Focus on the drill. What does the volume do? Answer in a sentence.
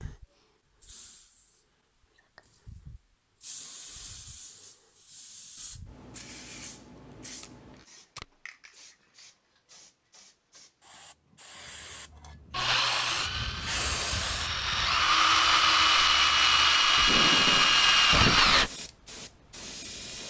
The volume of the drill goes up.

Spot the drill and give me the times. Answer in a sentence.
The drill can be heard from 12.5 to 18.7 s.